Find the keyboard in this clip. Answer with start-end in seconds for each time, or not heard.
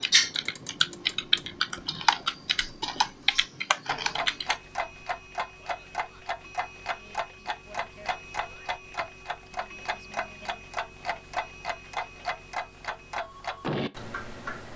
0.0-4.6.